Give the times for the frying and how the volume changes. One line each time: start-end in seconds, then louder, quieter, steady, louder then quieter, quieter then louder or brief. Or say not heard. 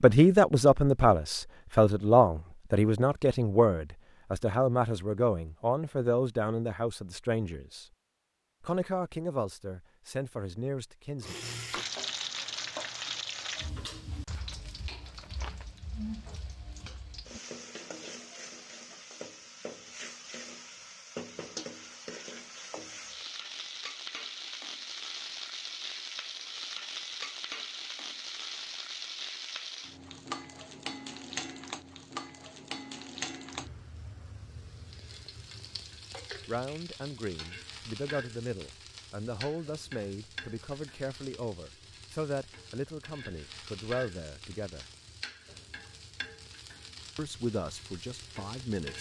11.2-48.9 quieter.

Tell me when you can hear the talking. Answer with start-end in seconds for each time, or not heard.
0.0-7.8, 8.6-11.3, 36.5-44.9, 47.1-48.9.